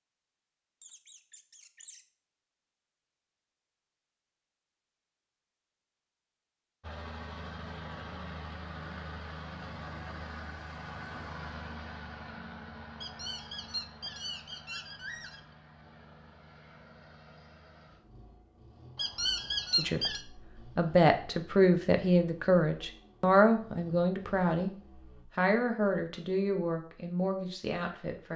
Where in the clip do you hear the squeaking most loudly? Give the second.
20 s.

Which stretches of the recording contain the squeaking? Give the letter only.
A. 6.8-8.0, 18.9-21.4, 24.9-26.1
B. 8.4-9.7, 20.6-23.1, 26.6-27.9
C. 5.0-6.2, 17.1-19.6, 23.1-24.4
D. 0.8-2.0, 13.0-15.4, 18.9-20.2
D.